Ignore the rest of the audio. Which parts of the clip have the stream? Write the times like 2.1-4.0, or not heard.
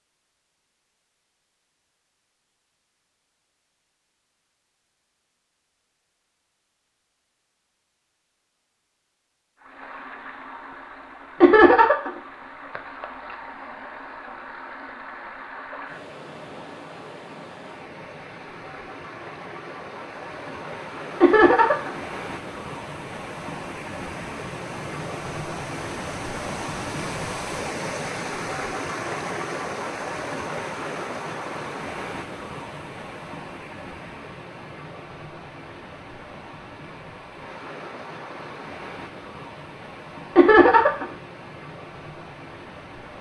9.6-43.1.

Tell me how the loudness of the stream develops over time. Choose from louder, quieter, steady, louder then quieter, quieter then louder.
louder then quieter.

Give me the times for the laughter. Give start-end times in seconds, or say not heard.
11.4-12.1, 21.2-21.9, 40.4-41.0.